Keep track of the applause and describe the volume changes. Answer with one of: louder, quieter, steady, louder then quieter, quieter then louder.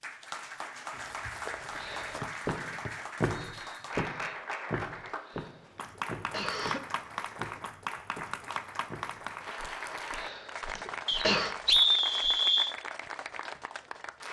steady.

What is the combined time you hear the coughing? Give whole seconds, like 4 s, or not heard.
4 s.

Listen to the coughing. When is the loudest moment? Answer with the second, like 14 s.
11 s.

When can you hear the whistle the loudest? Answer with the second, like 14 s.
12 s.